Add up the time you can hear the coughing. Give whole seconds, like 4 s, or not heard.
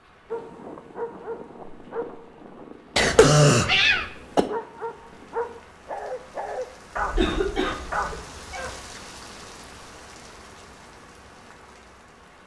3 s.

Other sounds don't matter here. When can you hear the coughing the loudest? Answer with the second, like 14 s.
3 s.